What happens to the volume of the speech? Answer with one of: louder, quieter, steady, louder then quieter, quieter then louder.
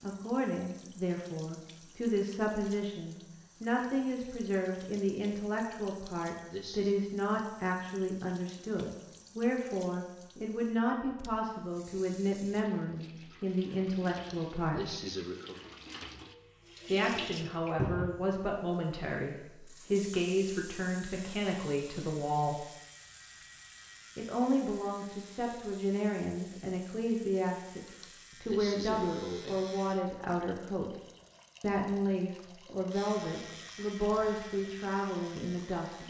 steady.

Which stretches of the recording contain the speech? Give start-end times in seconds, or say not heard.
0.0-14.9, 16.9-22.6, 24.1-30.9, 31.6-36.0.